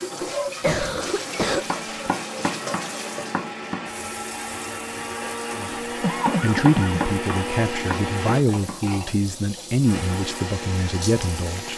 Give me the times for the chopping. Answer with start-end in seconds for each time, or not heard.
1.6-3.9, 6.2-8.8.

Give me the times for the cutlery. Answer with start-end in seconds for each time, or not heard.
not heard.